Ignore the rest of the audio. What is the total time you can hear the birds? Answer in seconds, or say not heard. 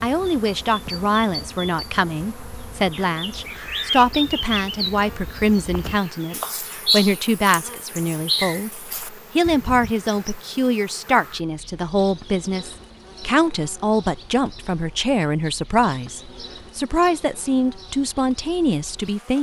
10 s.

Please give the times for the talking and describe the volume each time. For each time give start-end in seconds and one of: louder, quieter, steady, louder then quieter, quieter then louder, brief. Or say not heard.
0.0-19.3 steady.